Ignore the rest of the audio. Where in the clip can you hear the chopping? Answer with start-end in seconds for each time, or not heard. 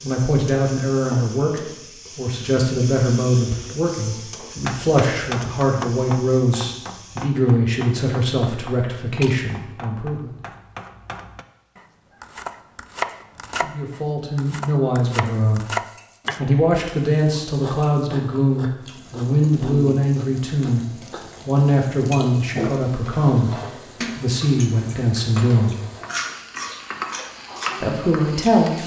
4.6-16.4.